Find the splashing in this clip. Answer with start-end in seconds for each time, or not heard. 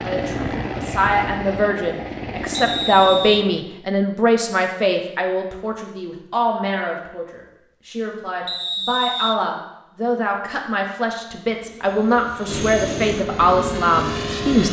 not heard.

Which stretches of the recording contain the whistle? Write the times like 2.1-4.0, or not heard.
2.5-3.5, 8.4-9.4.